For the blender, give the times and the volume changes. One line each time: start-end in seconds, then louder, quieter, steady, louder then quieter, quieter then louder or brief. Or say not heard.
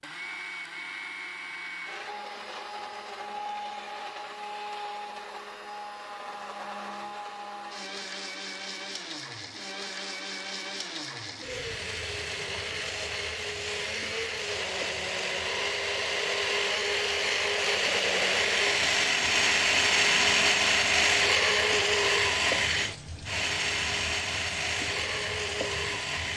0.0-26.3 louder.